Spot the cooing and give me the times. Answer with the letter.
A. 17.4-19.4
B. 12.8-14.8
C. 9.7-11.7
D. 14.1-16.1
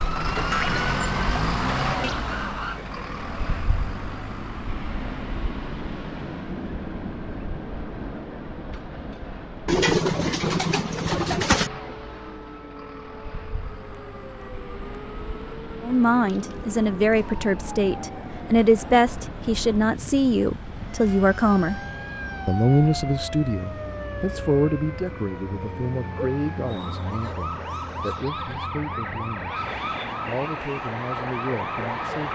C.